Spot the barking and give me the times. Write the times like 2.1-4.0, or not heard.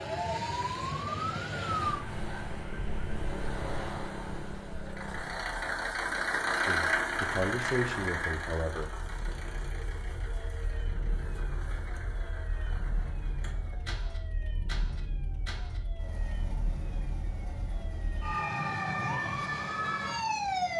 not heard.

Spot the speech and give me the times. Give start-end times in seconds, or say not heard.
6.7-8.9.